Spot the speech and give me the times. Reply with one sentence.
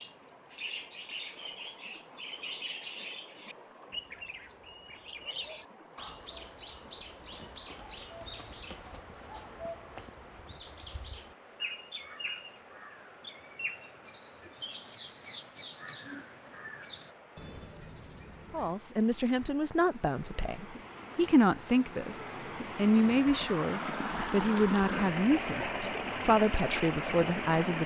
You can hear the speech from 18.5 to 27.8 s.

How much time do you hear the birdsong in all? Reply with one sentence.
You can hear the birdsong for 19 seconds altogether.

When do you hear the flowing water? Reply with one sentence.
The flowing water can be heard from 0.0 to 27.8 s.